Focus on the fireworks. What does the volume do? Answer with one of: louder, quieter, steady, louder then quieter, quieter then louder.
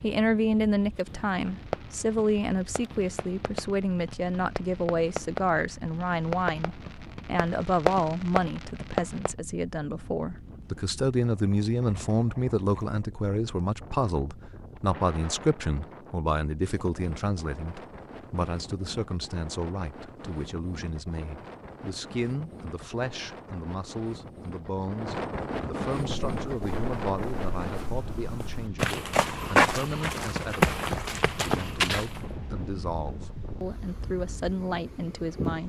louder.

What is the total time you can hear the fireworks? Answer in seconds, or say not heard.
8 s.